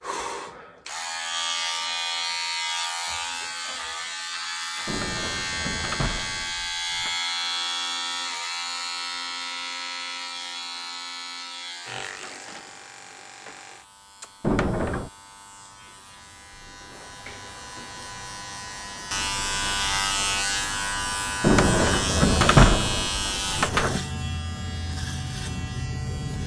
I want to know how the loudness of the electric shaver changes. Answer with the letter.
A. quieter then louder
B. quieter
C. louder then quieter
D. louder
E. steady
A.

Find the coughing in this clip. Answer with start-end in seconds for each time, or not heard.
not heard.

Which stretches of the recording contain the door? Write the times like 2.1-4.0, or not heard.
4.8-7.2, 14.4-15.1, 21.4-24.0.